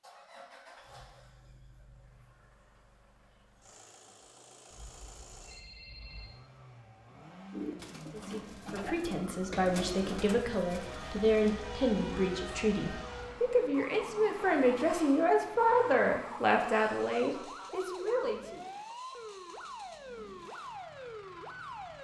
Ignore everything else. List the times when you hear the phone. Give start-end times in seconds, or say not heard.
4.7-6.4.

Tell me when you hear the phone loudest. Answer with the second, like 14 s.
6 s.